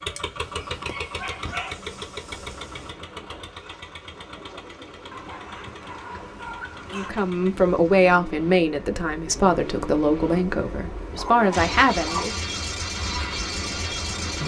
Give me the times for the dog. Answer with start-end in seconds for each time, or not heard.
0.1-3.0, 5.1-7.1, 11.2-12.4.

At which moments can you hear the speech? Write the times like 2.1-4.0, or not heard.
6.9-12.4.